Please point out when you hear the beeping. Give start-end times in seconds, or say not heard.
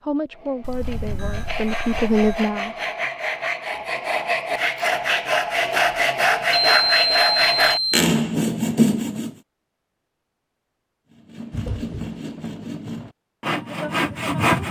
0.6-2.4, 6.7-8.0, 11.5-12.2.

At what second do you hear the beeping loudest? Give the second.
7 s.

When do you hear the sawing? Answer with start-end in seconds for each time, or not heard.
0.3-9.3, 11.1-14.6.